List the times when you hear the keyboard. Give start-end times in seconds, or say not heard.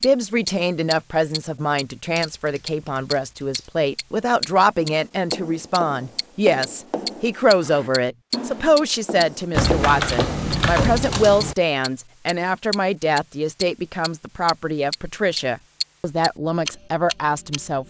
2.1-3.7, 9.5-11.6.